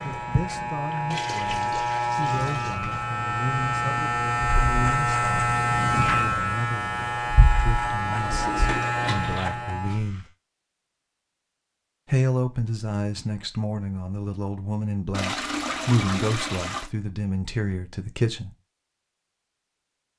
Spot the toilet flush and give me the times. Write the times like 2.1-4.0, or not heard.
1.1-2.8, 8.1-9.6, 15.1-16.9.